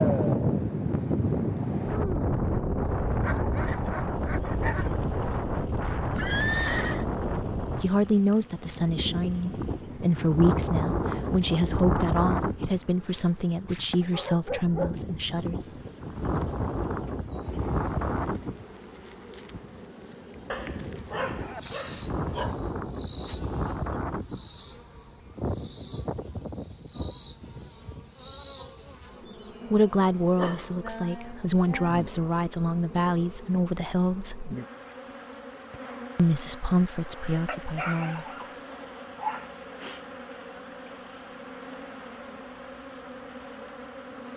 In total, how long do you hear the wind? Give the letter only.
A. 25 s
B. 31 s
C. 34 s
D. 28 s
D.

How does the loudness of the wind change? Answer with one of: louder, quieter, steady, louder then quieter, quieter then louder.
quieter.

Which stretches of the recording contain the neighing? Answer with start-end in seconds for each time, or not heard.
6.1-7.0.